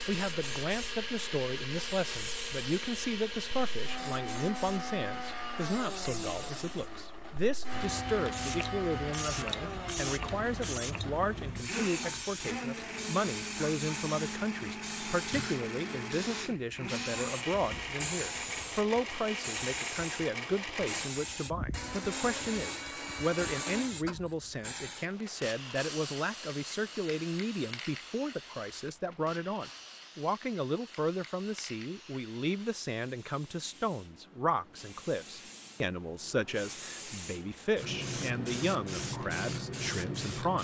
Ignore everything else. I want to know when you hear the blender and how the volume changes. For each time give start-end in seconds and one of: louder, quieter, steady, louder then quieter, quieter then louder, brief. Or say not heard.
0.0-23.9 steady.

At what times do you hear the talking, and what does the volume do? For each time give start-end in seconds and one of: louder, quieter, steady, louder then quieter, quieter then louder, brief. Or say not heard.
0.1-40.5 steady.